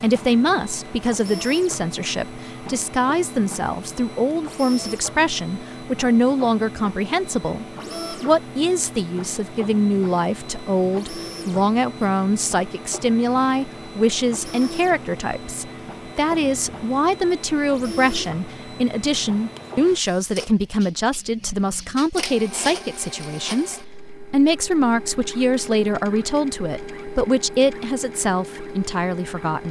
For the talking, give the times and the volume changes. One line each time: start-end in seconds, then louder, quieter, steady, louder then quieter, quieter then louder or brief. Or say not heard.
0.0-29.6 steady.